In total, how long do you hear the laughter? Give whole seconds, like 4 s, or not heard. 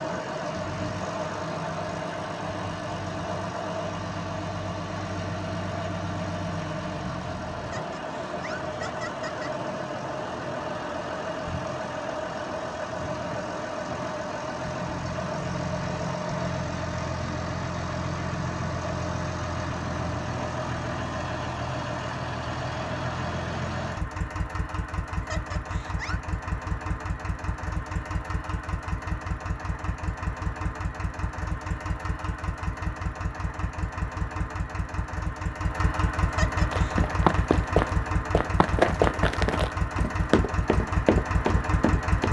4 s.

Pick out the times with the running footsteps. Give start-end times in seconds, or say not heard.
36.7-42.2.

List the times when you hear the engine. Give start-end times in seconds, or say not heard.
0.0-42.2.